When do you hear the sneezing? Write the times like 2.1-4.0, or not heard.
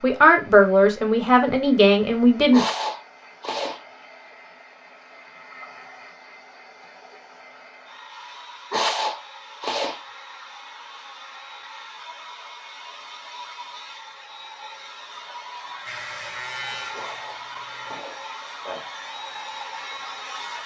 2.5-3.8, 8.7-10.0, 16.9-18.9.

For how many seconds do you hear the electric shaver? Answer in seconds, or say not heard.
2 s.